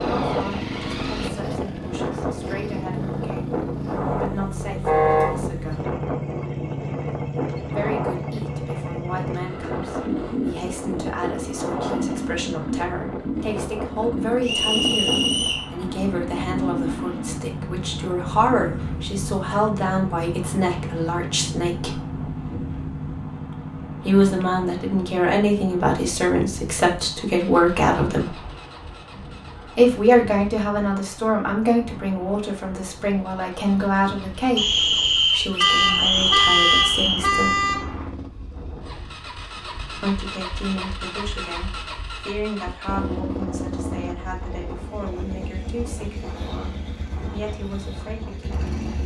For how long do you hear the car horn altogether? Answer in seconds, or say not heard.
3 s.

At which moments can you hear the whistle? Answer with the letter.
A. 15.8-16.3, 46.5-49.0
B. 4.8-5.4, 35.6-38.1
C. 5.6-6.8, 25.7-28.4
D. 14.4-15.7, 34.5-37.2
D.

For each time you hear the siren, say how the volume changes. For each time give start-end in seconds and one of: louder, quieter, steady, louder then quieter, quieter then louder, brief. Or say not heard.
not heard.